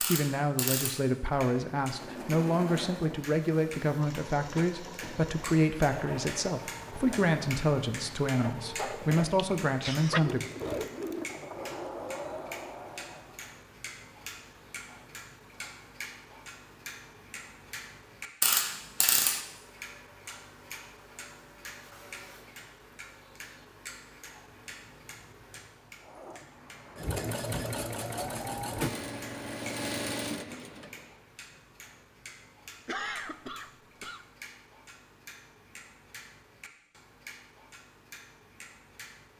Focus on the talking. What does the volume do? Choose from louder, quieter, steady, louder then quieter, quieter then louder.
steady.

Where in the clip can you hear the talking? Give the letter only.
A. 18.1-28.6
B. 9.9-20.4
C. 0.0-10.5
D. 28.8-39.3
C.